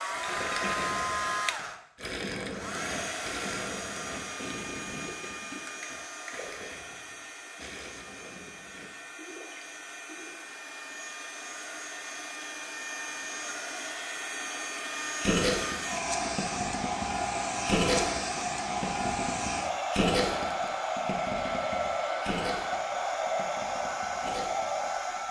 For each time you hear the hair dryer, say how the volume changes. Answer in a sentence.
The hair dryer can be heard from 0.0 to 25.2 s, getting quieter then louder.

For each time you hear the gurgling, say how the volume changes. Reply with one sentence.
You can hear the gurgling from 0.1 to 10.3 s, getting quieter; and from 15.2 to 25.2 s, getting louder then quieter.